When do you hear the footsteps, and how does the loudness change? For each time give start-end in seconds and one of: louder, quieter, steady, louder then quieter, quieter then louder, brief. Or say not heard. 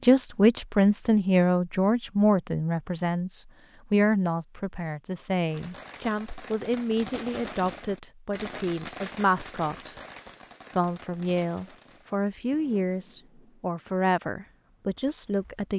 not heard.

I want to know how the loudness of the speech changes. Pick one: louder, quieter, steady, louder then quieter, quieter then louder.
quieter.